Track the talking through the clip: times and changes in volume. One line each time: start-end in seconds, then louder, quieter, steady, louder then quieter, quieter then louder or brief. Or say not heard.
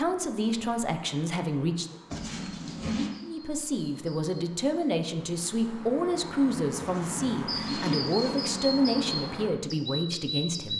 0.0-1.9 brief
3.2-10.7 steady.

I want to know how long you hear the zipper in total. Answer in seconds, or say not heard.
3 s.